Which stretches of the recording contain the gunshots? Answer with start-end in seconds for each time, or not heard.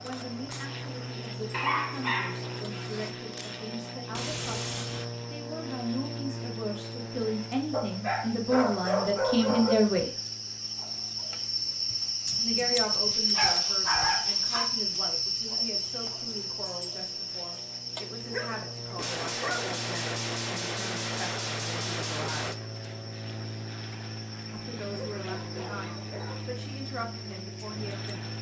3.3-5.0, 18.9-22.6.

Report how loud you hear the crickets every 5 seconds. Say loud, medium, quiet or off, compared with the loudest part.
quiet, quiet, loud, medium, quiet, quiet.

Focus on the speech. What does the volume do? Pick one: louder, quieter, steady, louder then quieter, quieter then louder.
louder then quieter.